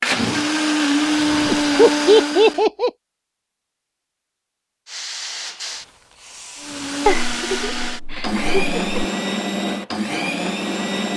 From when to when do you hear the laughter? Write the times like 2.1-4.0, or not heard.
1.5-2.9, 7.0-9.0.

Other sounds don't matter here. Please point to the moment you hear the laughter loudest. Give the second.
2 s.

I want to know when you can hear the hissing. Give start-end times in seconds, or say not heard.
4.8-7.5.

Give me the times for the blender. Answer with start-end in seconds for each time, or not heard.
0.0-2.6, 6.6-11.1.